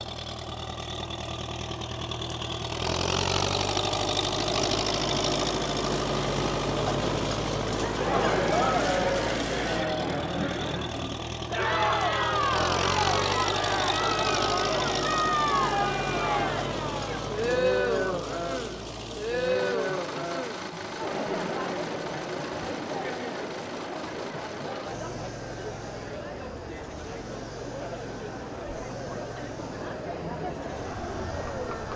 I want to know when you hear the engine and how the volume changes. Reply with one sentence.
You can hear the engine from 0.0 to 31.9 s, getting quieter.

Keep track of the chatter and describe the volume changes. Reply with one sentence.
The loudness of the chatter goes down.